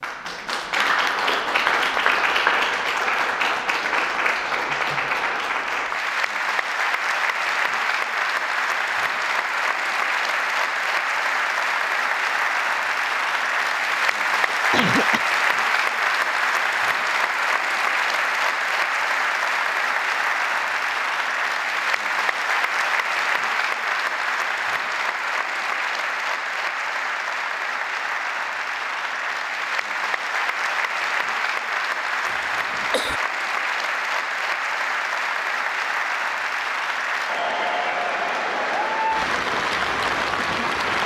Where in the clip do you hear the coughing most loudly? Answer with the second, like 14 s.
15 s.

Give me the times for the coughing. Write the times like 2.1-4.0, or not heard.
14.5-15.2, 32.2-33.1.